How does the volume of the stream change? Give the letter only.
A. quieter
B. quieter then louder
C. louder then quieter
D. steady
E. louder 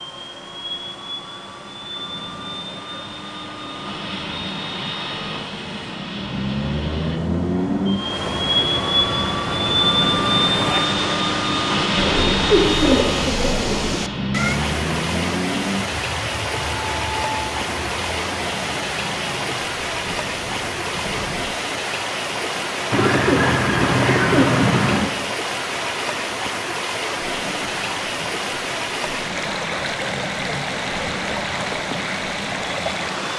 E.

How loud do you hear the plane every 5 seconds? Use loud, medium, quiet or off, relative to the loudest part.
medium, loud, loud, medium, quiet, quiet, quiet.